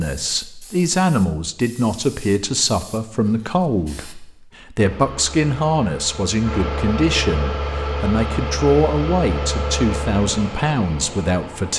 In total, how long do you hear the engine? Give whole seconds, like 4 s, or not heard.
7 s.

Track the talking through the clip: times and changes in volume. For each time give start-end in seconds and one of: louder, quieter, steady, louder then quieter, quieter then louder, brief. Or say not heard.
0.0-11.7 steady.